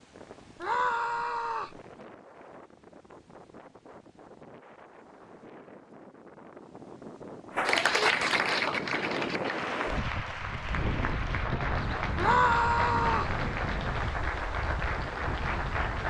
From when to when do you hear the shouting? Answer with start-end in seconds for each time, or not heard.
0.6-1.8, 12.2-13.3.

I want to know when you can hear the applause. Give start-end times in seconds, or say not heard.
7.5-16.0.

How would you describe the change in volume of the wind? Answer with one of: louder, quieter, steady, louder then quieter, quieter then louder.
louder.